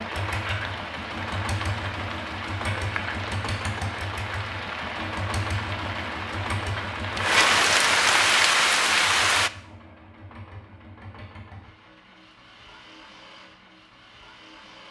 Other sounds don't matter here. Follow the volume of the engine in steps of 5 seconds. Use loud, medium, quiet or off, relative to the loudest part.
loud, loud, quiet.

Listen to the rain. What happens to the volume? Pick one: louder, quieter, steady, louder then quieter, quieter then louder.
louder.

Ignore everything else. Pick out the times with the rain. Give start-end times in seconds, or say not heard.
0.0-9.5.